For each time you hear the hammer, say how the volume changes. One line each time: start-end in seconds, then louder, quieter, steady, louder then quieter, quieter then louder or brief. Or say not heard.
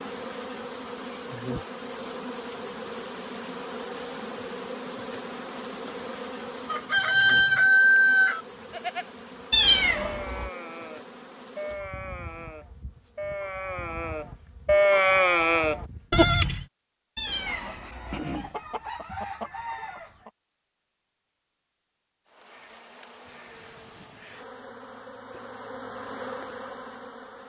not heard.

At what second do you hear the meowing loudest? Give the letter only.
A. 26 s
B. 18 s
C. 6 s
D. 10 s
D.